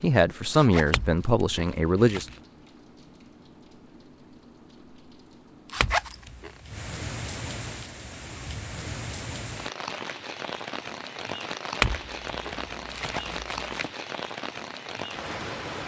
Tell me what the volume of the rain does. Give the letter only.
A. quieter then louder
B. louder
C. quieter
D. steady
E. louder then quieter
B.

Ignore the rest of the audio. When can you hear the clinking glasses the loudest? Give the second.
12 s.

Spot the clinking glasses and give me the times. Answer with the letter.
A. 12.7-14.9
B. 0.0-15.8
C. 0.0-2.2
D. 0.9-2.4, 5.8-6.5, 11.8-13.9
D.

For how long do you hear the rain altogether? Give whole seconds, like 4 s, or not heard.
16 s.